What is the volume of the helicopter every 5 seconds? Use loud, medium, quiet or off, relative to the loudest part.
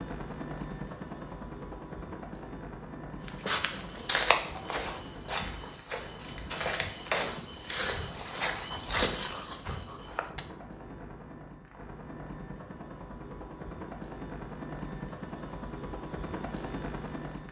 loud, medium, loud, loud.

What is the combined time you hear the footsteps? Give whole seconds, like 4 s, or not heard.
7 s.